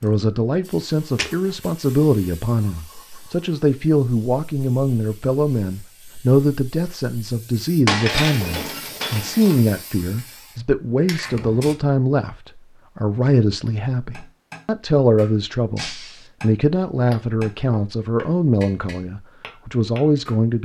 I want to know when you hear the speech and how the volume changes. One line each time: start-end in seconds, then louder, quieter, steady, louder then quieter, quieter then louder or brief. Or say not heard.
0.0-20.6 steady.